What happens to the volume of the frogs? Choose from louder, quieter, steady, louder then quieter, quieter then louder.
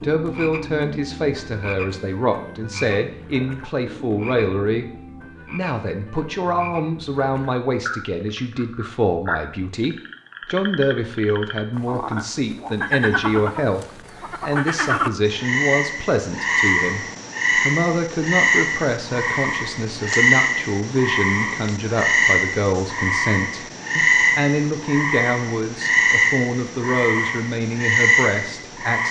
louder.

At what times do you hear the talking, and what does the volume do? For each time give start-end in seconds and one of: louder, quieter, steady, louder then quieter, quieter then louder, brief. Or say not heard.
0.0-4.9 steady
5.5-29.0 steady.